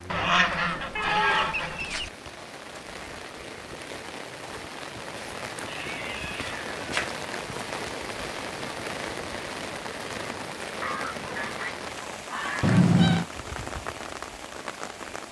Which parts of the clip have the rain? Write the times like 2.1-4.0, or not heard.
0.0-15.2.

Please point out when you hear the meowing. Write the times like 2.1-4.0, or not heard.
0.9-1.6, 5.7-7.2, 12.6-13.2.